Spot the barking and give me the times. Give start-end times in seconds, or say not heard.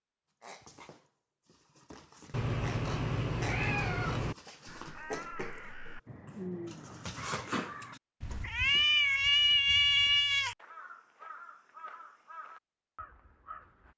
0.4-8.9.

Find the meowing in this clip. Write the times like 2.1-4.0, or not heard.
2.3-4.3, 8.2-10.6.